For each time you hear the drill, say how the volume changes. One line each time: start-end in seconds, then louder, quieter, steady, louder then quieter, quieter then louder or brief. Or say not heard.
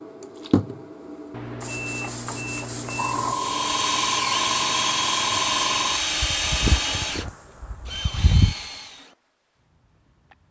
3.3-9.2 quieter.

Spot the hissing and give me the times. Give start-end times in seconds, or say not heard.
0.0-10.4.